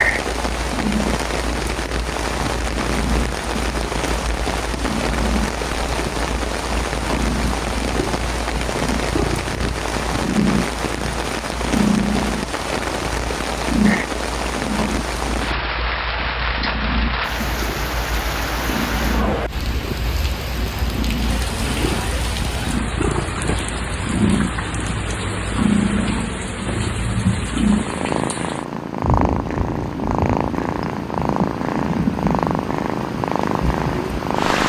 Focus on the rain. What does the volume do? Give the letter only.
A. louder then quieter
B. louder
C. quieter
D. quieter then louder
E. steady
E.